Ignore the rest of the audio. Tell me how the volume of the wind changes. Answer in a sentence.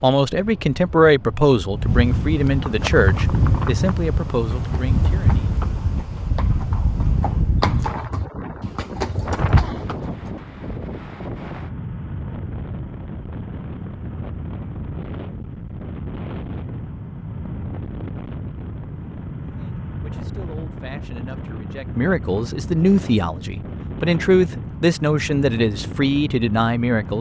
The loudness of the wind goes down.